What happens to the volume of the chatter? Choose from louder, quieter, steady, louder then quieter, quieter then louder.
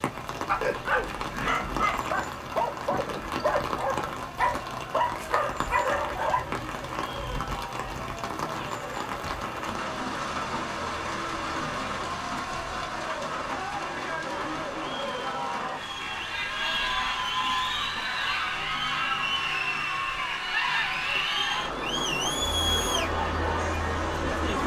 louder.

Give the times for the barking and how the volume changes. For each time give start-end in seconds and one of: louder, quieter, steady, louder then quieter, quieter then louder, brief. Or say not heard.
0.5-6.5 steady.